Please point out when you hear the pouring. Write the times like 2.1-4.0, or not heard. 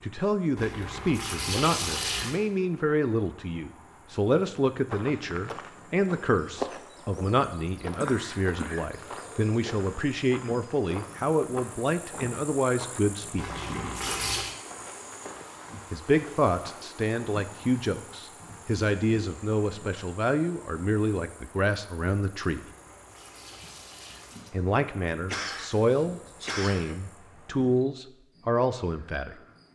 0.6-2.4, 13.3-14.6, 22.6-24.5.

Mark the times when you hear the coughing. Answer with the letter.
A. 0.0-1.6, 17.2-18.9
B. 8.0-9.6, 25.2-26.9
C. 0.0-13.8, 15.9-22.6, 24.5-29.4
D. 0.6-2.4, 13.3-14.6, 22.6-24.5
B.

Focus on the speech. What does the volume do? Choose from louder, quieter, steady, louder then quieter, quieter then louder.
steady.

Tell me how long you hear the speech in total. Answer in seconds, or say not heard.
25 s.